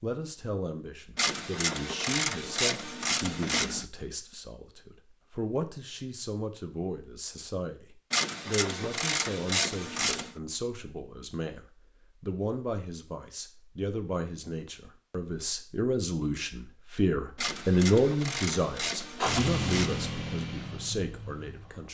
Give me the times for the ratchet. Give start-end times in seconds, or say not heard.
1.1-3.9, 8.1-10.3, 17.4-20.1.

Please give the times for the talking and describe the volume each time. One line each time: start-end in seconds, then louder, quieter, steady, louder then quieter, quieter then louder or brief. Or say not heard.
0.0-21.8 louder.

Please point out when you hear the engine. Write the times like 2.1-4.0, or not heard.
19.1-21.8.